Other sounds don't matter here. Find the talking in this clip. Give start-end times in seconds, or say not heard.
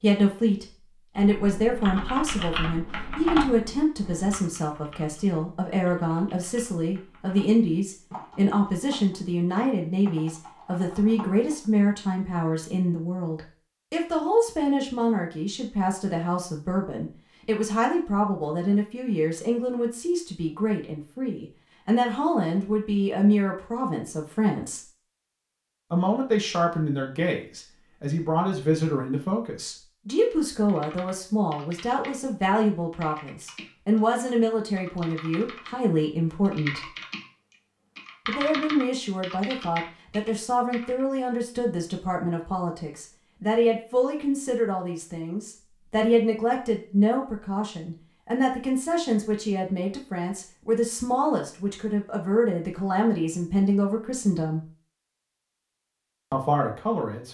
0.0-24.9, 25.9-36.9, 38.2-54.6, 56.3-57.2.